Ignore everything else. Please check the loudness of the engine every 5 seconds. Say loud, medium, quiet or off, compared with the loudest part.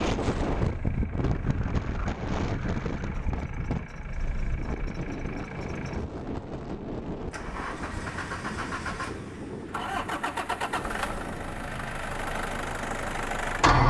quiet, medium, loud.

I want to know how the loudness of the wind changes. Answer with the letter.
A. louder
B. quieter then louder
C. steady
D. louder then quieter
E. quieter
E.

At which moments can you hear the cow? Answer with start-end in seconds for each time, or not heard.
not heard.